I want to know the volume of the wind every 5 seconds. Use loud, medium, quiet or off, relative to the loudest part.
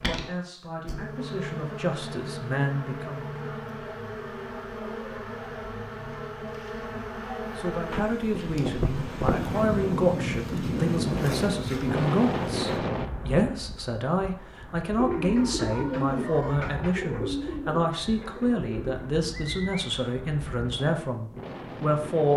off, loud, loud, quiet, medium.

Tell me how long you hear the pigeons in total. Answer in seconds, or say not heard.
5 s.